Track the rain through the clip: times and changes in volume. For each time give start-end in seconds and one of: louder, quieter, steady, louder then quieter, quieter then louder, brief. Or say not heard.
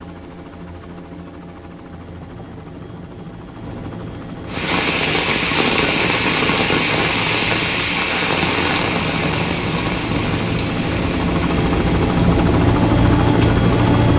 4.5-14.1 quieter.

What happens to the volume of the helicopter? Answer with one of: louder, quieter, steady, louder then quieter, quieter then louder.
louder.